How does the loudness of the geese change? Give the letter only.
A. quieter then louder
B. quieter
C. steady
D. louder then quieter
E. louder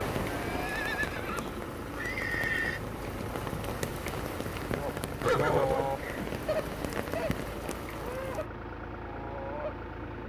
B.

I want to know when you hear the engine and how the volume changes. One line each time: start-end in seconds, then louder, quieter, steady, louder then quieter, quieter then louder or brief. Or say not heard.
0.1-10.2 steady.